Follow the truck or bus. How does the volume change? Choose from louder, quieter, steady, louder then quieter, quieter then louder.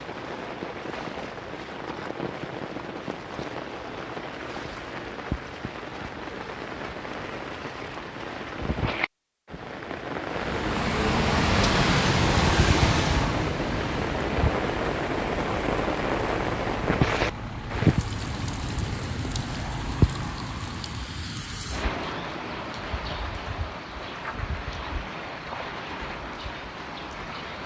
quieter.